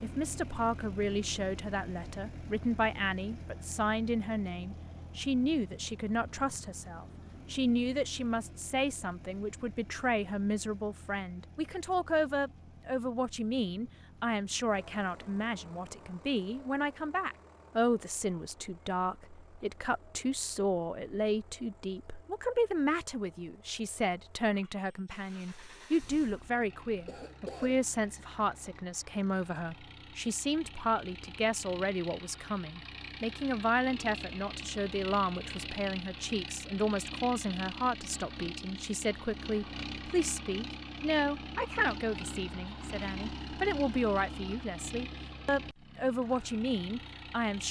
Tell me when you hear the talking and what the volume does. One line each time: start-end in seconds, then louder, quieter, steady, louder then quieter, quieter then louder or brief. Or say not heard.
0.0-47.6 steady.